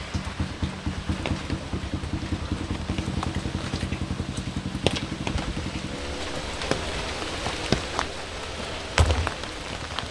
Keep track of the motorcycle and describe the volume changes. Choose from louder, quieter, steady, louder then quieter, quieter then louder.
quieter.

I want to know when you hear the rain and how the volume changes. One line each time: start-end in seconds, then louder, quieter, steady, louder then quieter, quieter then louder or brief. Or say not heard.
0.0-10.0 louder.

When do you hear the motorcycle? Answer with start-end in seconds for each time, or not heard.
0.0-10.0.